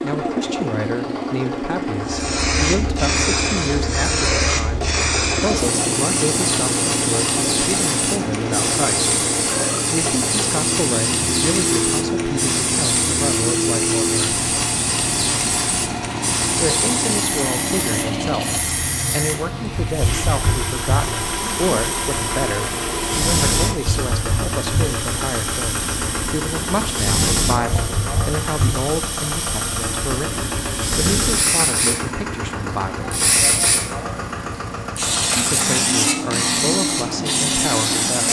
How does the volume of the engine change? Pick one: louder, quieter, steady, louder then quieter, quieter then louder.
steady.